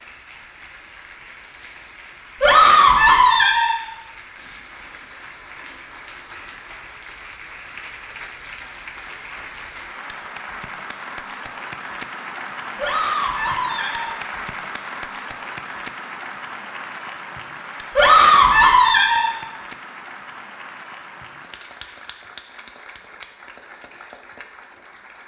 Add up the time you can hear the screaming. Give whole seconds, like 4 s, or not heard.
4 s.